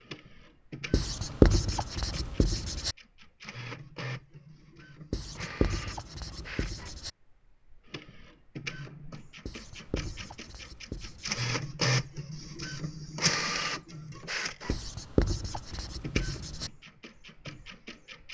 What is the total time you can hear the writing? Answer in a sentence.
The writing can be heard for 8 seconds in total.